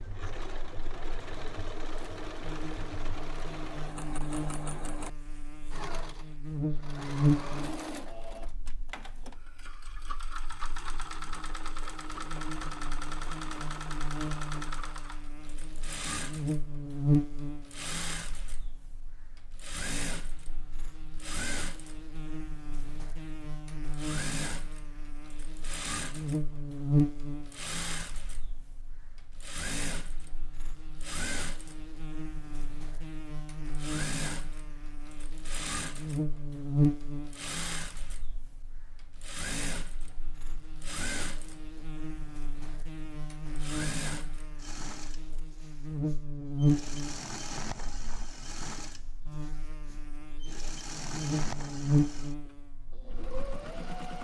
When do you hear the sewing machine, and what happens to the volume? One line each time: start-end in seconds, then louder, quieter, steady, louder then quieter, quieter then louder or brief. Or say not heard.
0.0-54.1 steady.